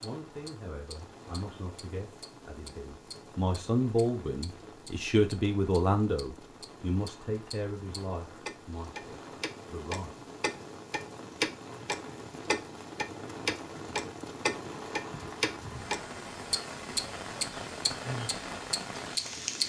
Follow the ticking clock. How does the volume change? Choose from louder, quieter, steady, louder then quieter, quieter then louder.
louder.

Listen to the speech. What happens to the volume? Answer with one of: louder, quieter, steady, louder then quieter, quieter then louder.
louder then quieter.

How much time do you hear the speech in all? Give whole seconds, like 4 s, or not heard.
10 s.